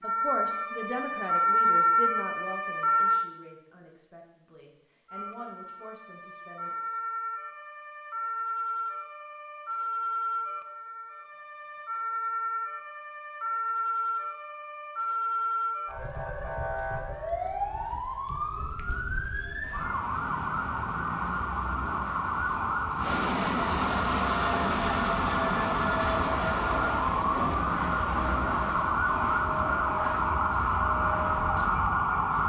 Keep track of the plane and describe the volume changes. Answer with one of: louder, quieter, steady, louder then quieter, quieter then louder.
louder then quieter.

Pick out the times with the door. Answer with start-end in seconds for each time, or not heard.
not heard.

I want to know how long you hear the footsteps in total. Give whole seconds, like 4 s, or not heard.
not heard.